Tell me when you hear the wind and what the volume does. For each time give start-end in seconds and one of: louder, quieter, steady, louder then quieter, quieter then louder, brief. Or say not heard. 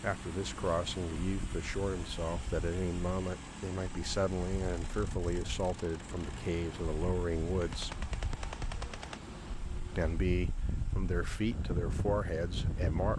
0.0-13.1 louder.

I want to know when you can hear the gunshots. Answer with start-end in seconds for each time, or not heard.
7.6-9.2.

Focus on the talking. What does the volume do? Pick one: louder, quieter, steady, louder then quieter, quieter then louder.
steady.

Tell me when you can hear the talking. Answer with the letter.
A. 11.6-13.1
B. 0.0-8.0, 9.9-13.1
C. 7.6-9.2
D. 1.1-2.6
B.